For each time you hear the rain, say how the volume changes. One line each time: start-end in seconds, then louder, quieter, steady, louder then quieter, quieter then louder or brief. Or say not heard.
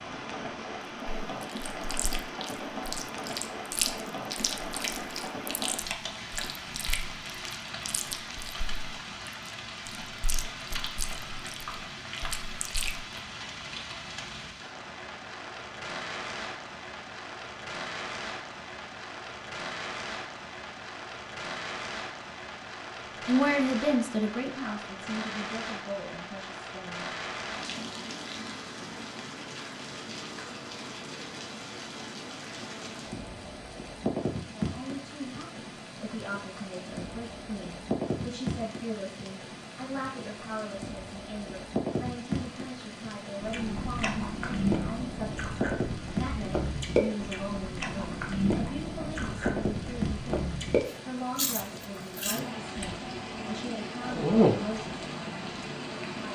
0.0-56.2 steady.